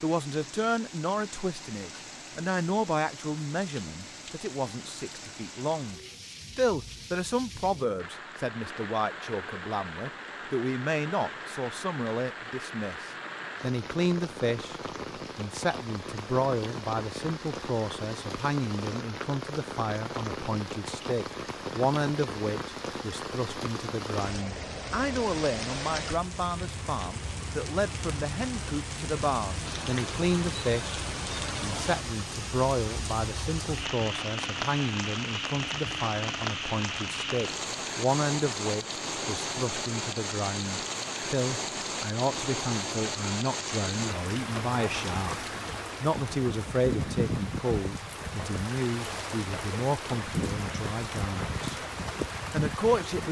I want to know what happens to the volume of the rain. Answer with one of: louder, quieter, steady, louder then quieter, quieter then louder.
louder.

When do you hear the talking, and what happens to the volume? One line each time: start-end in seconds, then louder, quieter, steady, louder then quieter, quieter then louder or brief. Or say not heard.
0.0-31.0 steady
31.6-51.7 steady
52.5-53.2 brief.